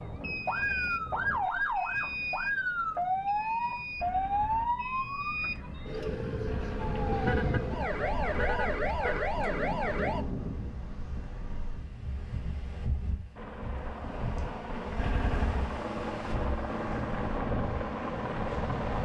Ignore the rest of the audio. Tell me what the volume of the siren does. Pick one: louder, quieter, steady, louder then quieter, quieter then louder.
steady.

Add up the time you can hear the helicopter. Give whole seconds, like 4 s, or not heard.
6 s.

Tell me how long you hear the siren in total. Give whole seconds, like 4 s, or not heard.
10 s.